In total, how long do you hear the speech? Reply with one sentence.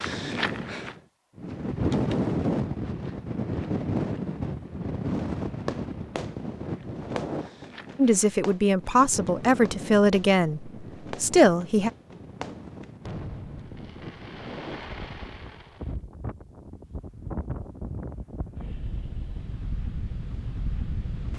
You can hear the speech for 4 seconds altogether.